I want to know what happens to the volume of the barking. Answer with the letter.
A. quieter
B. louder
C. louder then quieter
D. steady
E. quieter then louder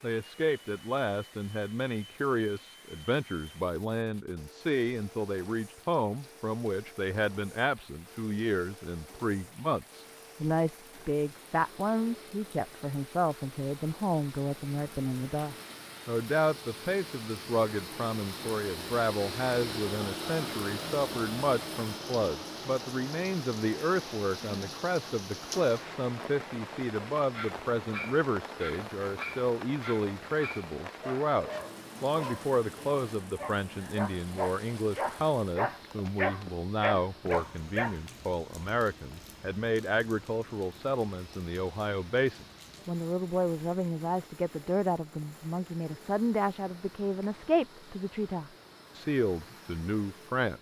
B.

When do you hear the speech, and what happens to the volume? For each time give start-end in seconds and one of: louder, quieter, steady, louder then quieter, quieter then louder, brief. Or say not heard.
0.0-50.5 steady.